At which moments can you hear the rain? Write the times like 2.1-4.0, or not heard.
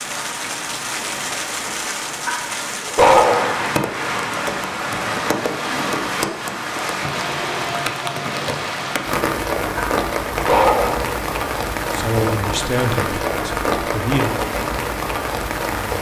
0.0-15.9.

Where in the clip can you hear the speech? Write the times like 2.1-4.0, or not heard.
11.9-14.4.